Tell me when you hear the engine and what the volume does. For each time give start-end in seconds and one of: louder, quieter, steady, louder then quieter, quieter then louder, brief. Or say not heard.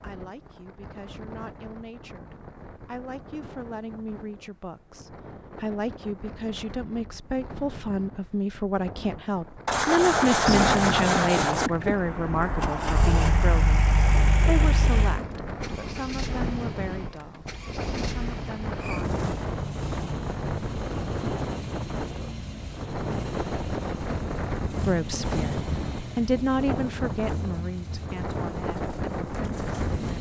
10.4-30.1 quieter.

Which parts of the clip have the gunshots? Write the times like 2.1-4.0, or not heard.
9.7-11.7.